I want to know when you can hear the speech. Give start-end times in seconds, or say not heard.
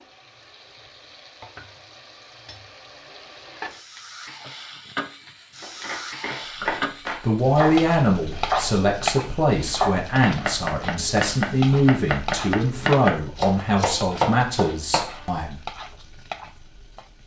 6.6-15.6.